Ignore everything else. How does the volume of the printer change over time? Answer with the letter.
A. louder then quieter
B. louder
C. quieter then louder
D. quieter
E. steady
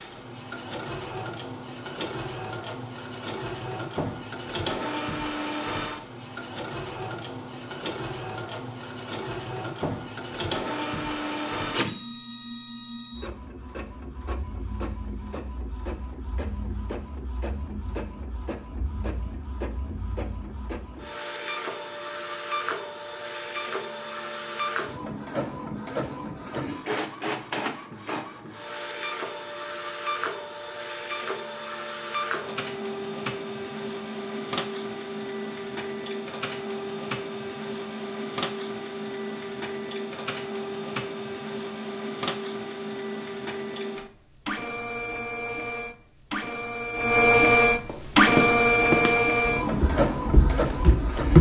B.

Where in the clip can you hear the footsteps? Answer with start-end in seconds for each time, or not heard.
47.9-51.3.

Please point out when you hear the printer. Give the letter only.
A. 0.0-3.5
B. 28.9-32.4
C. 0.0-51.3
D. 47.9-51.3
C.